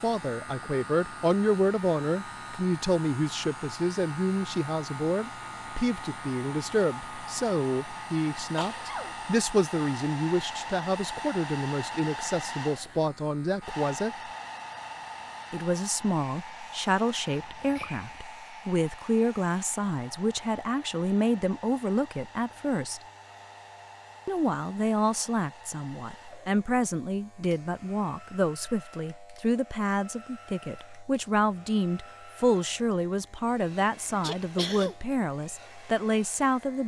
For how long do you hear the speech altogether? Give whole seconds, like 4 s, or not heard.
34 s.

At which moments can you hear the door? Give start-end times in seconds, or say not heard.
not heard.